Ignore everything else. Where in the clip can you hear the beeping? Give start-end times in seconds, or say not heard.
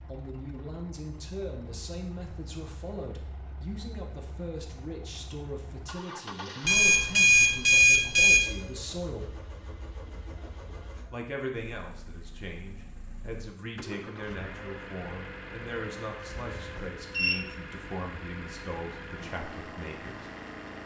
6.7-8.4, 16.3-17.4.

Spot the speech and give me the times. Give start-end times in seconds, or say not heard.
0.1-9.3, 11.1-20.2.